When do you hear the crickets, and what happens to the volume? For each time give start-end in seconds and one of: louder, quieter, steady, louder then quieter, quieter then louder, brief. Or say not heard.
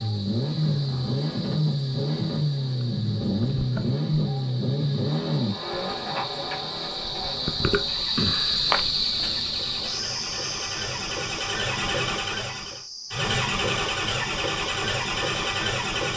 0.0-16.1 louder then quieter.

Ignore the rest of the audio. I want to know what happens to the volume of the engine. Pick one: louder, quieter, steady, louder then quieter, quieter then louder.
quieter then louder.